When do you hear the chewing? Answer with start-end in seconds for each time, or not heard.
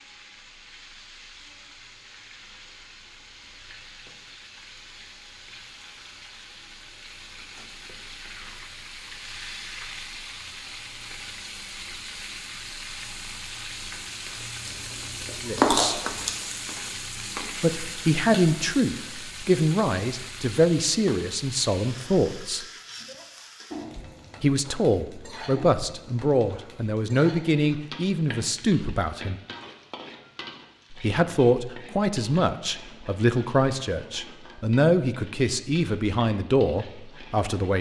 14.7-16.3.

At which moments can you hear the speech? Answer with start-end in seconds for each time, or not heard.
15.4-15.9, 17.6-22.6, 24.4-29.4, 30.9-37.7.